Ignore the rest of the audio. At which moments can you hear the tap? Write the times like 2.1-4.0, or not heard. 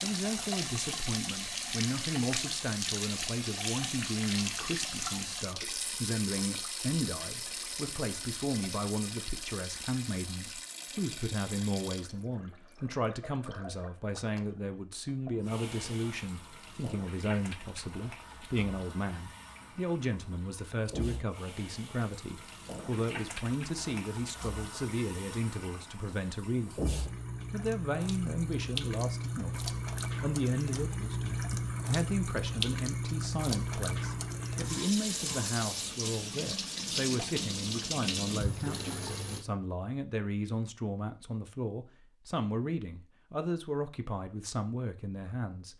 0.0-39.5.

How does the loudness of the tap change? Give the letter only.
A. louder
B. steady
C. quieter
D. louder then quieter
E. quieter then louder
E.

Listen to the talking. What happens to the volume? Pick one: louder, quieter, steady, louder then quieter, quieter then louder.
steady.